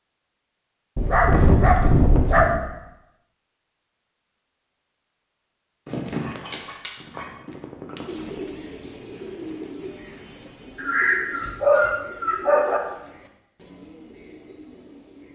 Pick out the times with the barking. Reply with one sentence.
You can hear the barking from 0.9 to 2.6 s, from 5.8 to 8.4 s and from 10.8 to 12.8 s.